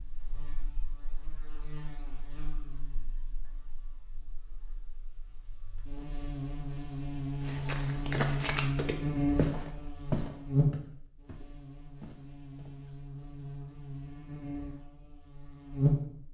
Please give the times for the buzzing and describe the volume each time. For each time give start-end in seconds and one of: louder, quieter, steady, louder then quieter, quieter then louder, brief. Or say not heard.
0.0-16.2 louder then quieter.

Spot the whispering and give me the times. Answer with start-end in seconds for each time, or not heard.
not heard.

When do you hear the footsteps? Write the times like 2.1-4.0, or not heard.
7.4-12.9.